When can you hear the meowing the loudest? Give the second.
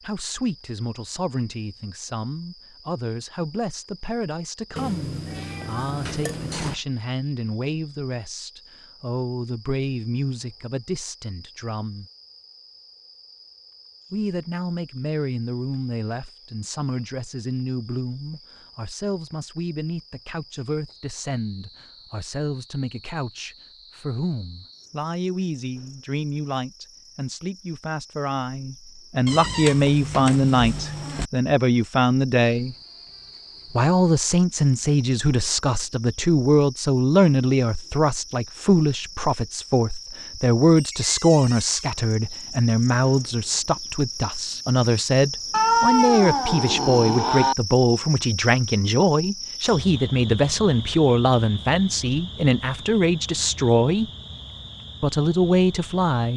46 s.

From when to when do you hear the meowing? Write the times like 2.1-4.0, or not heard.
4.8-6.8, 29.2-31.3, 45.5-47.5.